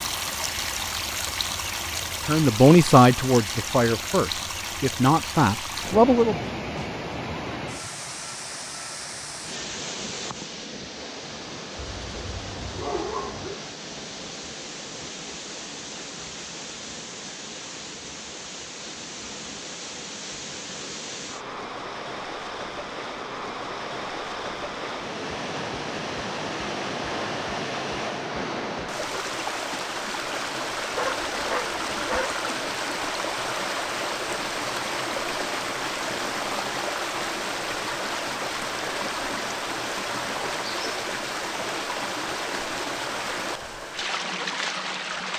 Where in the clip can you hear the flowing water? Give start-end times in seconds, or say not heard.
0.0-45.3.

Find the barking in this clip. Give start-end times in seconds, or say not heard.
11.8-13.6, 30.9-32.4.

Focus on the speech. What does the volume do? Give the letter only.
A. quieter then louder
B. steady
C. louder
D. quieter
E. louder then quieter
A.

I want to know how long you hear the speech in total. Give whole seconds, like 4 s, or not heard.
4 s.